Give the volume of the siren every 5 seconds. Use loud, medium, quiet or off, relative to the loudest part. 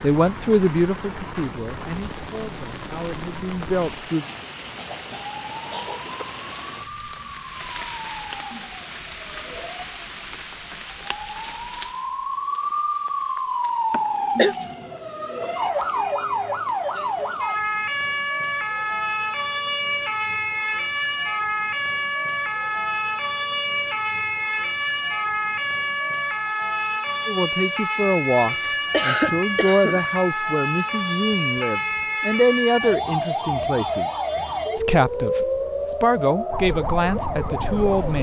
quiet, quiet, loud, loud, loud, loud, loud, loud.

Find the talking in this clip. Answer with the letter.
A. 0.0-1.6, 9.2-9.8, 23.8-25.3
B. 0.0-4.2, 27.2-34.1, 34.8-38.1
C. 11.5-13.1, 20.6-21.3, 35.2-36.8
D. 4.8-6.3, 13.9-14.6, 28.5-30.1
B.